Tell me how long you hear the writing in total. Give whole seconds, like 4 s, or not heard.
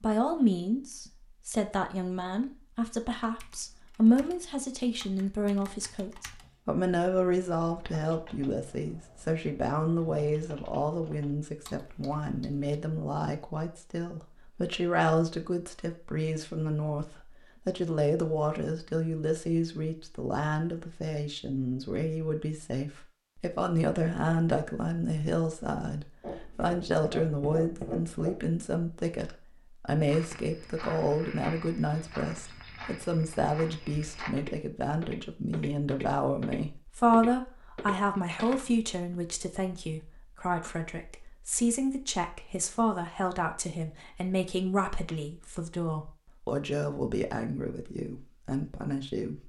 2 s.